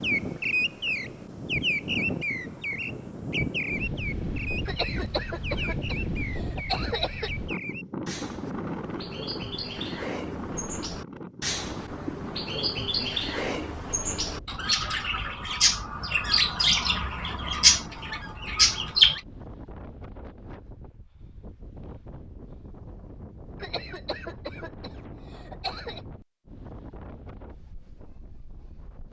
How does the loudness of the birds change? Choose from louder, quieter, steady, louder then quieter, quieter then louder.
quieter then louder.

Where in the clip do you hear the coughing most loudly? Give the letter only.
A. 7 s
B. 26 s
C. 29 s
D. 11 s
A.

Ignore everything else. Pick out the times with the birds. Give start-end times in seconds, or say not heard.
0.0-19.2.